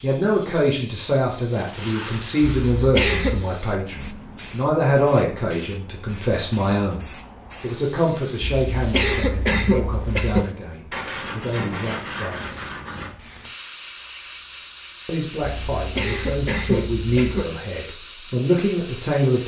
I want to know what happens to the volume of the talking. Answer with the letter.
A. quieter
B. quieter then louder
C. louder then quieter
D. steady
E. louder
B.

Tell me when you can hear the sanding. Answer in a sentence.
The sanding can be heard from 1.8 to 3.7 s and from 10.9 to 13.2 s.